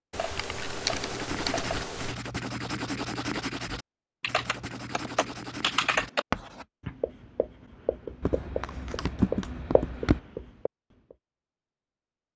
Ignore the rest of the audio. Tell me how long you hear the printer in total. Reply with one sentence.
You can't hear the printer here.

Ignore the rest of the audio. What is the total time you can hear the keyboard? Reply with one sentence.
You can hear the keyboard for 6 seconds altogether.